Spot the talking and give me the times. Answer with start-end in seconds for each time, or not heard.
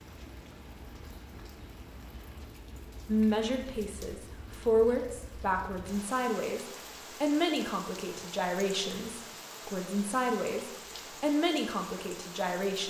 3.0-12.8.